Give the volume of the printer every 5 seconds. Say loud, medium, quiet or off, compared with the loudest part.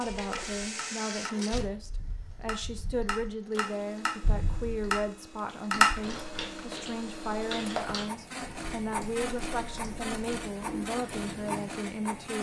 medium, loud, loud.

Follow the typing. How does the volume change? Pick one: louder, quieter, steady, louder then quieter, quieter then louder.
louder then quieter.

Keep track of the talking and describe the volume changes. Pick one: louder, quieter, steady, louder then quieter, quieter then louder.
steady.